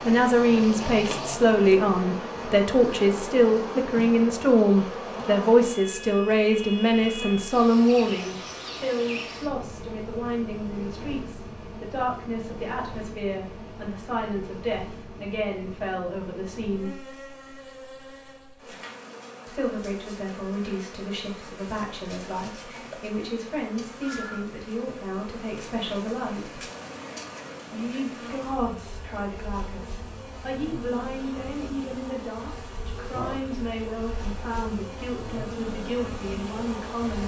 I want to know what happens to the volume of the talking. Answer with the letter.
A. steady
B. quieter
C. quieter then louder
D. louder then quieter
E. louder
B.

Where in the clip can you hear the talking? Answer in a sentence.
The talking can be heard from 0.0 to 17.0 s, from 19.4 to 26.6 s and from 27.7 to 37.2 s.